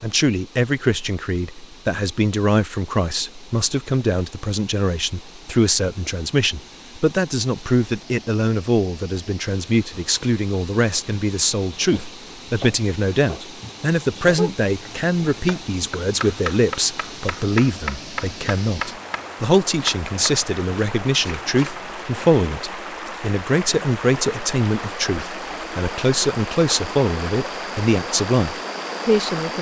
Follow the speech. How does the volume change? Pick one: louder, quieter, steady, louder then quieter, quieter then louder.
steady.